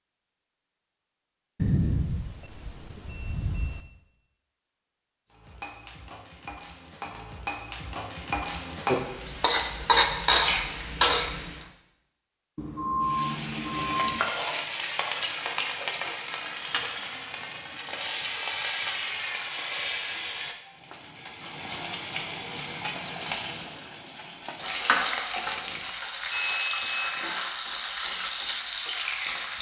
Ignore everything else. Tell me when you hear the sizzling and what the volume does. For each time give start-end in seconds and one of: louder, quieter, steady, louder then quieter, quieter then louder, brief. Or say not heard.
5.3-11.7 louder
13.0-29.5 steady.